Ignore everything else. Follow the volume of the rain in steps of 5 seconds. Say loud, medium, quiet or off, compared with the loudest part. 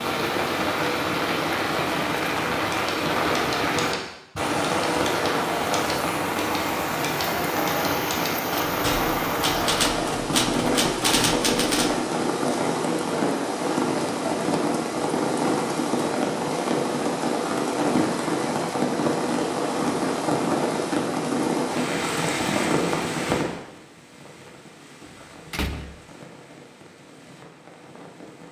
loud, loud, loud, loud, loud, quiet.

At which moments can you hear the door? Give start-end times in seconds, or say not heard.
25.0-25.9.